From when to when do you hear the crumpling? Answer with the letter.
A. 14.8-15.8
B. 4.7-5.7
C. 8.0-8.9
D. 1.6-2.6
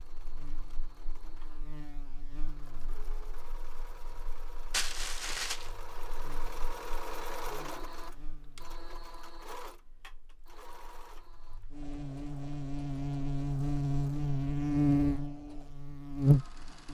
B.